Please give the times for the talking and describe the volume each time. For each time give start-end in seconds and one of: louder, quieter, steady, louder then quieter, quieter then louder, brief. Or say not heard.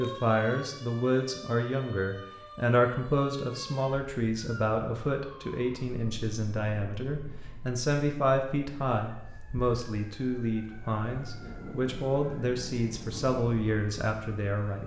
0.0-14.8 steady.